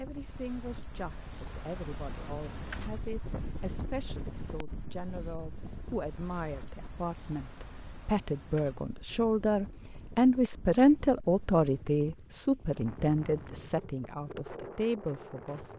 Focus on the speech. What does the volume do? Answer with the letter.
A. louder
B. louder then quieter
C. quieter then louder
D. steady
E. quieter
B.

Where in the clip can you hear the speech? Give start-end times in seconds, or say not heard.
0.0-15.7.